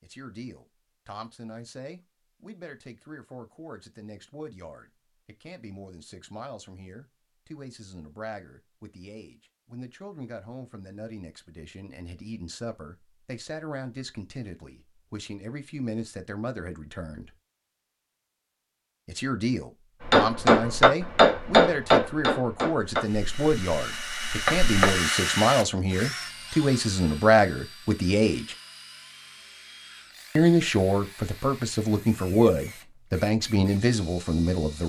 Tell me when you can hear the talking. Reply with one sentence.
The talking can be heard from 0.0 to 17.3 s, from 19.1 to 28.6 s and from 30.4 to 34.8 s.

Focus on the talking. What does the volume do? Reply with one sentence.
The loudness of the talking goes up.